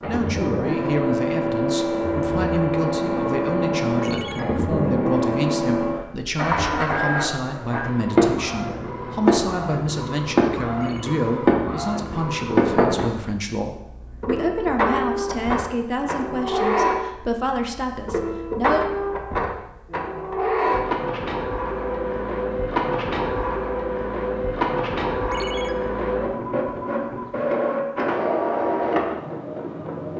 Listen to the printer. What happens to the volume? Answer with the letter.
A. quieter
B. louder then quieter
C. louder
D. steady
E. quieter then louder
D.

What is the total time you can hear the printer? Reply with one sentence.
The printer can be heard for 30 seconds in total.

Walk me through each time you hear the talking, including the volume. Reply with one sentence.
The talking can be heard from 0.1 to 18.9 s, at a steady volume.